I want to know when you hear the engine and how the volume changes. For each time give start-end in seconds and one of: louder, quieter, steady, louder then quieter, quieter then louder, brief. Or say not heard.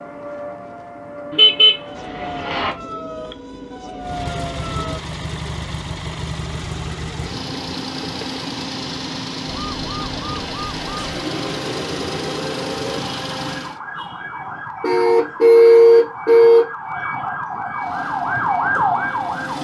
4.0-13.8 steady
17.8-19.5 brief.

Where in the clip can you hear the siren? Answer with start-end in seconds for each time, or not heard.
0.0-5.0, 9.4-19.5.